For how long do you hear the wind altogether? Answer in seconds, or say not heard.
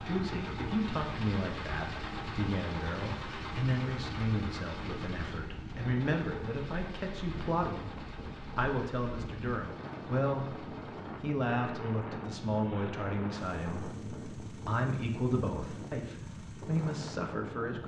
18 s.